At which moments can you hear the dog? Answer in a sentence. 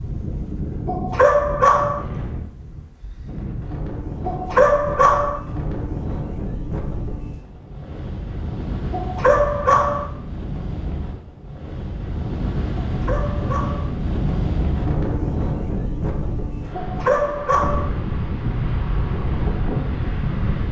The dog can be heard from 0.8 to 2.0 s, from 4.2 to 5.4 s, from 8.9 to 10.1 s, from 12.8 to 13.9 s and from 16.7 to 17.9 s.